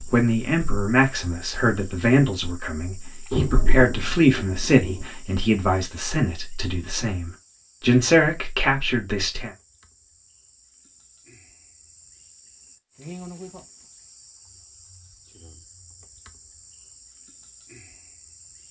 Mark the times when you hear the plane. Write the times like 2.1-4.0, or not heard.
not heard.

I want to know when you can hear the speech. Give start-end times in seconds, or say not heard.
0.0-9.5.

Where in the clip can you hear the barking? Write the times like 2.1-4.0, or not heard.
not heard.